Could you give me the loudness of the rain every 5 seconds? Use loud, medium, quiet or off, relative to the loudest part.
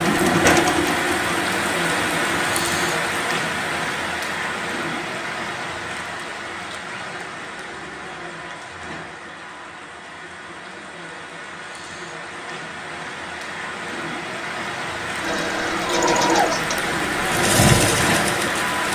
loud, medium, medium, loud.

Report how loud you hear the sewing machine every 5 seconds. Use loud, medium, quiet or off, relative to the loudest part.
loud, off, off, loud.